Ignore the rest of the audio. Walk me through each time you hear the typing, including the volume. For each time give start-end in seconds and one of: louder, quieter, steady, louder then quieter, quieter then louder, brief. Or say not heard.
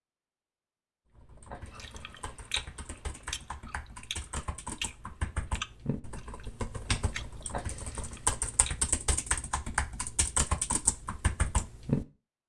1.1-12.1 louder.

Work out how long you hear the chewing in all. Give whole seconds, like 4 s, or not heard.
7 s.